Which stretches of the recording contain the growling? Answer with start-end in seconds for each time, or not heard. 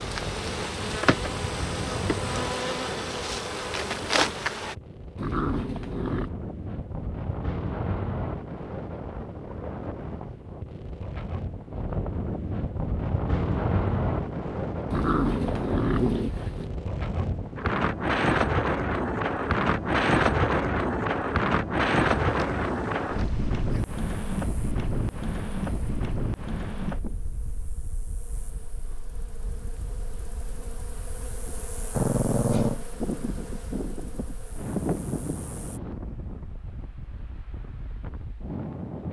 5.2-6.3, 14.9-16.7, 31.9-32.8.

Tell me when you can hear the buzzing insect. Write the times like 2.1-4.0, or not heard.
0.0-4.8, 22.2-35.8.